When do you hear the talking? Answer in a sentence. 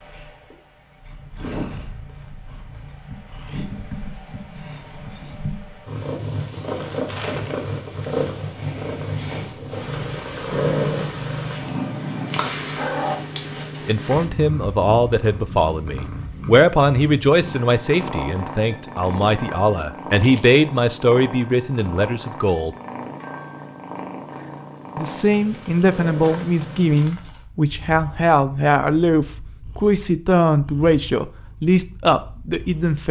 You can hear the talking from 13.8 to 22.8 s and from 24.9 to 33.0 s.